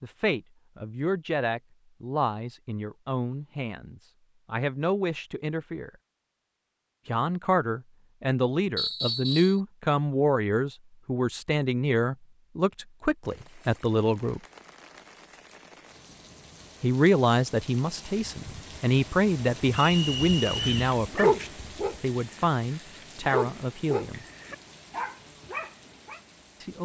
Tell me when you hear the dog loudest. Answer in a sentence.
The volume of the dog peaks at 21 seconds.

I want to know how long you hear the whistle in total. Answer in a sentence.
You can hear the whistle for 2 seconds altogether.